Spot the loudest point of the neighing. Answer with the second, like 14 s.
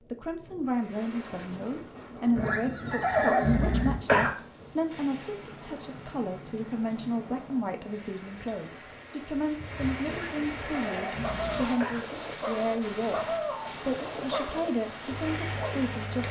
3 s.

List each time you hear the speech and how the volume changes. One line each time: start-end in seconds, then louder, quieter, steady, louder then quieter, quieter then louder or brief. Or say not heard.
0.1-16.2 steady.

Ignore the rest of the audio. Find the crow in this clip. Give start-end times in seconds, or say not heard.
not heard.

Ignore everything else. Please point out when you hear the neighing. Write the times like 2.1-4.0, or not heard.
2.4-4.3, 10.1-12.1.